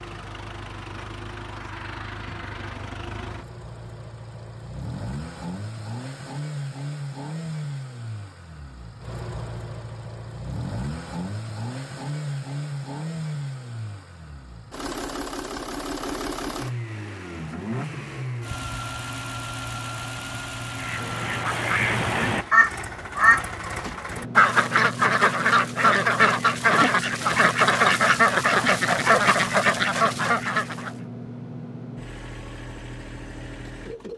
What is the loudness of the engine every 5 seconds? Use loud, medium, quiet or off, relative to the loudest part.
medium, loud, loud, loud, loud, loud, medium.